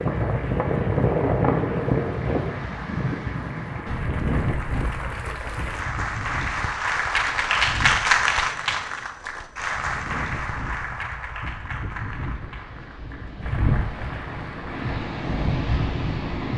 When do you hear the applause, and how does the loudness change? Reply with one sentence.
You can hear the applause from 0.0 to 15.2 s, getting louder then quieter.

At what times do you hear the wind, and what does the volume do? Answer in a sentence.
You can hear the wind from 0.0 to 16.5 s, getting quieter then louder.